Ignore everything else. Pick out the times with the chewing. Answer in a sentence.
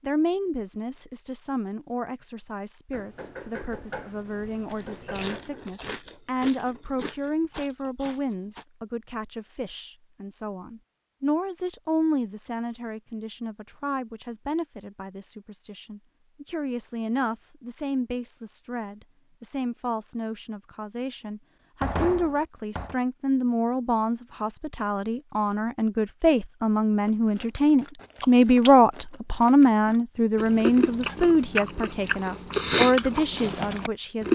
You can hear the chewing from 4.7 to 8.7 s and from 27.1 to 34.2 s.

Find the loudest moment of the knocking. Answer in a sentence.
The loudest moment of the knocking is at 22 seconds.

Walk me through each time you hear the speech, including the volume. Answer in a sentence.
You can hear the speech from 0.0 to 34.2 s, getting louder.